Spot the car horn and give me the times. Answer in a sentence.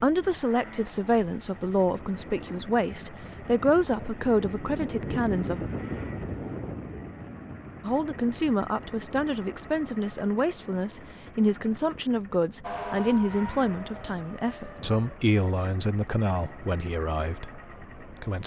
The car horn can't be heard in this clip.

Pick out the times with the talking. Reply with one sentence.
You can hear the talking from 0.0 to 5.6 s and from 7.8 to 18.4 s.